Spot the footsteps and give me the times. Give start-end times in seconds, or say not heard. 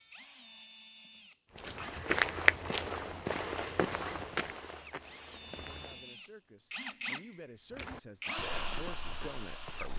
1.6-6.0, 7.8-9.9.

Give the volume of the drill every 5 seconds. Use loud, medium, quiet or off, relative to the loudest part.
medium, loud.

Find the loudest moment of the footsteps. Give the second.
2 s.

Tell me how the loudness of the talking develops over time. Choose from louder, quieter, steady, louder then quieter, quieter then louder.
louder.